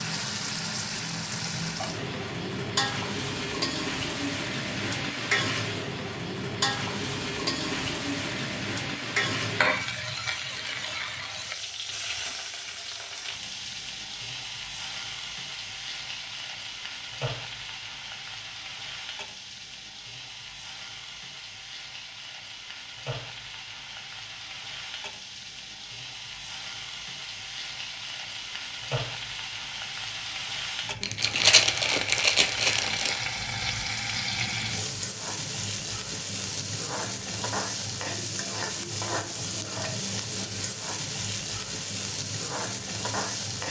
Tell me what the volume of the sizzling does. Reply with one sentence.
The loudness of the sizzling goes down, then up.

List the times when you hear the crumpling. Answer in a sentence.
The crumpling can be heard from 31.0 to 33.2 s.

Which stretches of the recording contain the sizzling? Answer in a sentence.
You can hear the sizzling from 0.0 to 43.6 s.